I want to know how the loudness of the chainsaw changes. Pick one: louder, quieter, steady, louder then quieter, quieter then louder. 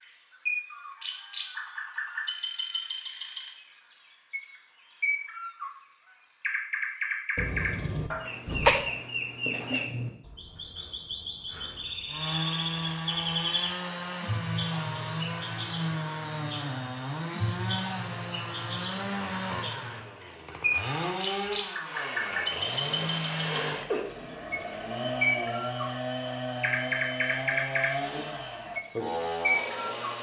steady.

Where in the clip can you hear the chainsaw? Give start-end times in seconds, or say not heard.
12.1-30.1.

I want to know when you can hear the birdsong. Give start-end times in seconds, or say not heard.
0.0-30.1.